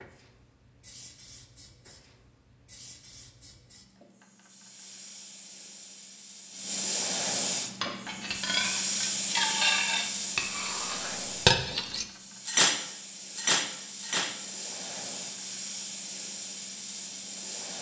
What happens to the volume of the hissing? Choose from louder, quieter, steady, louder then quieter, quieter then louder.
louder then quieter.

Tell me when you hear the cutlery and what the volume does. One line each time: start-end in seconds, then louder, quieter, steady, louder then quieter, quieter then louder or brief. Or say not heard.
7.8-14.3 louder.